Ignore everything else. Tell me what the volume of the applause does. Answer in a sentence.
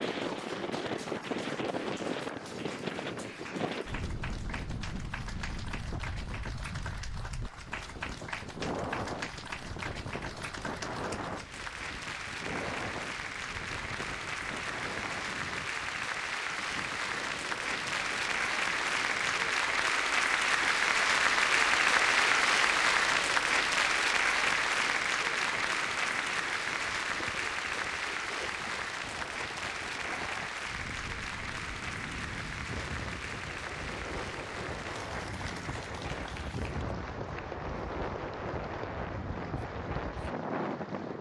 The loudness of the applause goes up, then down.